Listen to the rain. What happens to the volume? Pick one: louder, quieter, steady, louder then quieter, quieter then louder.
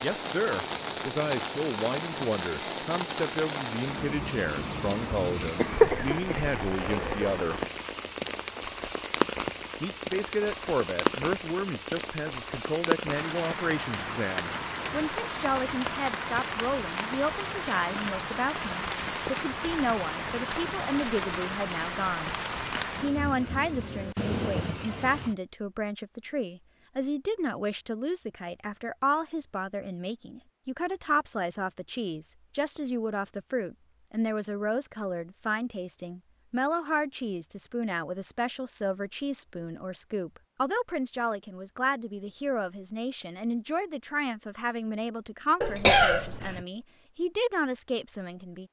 steady.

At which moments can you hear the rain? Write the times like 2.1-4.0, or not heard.
0.0-25.4.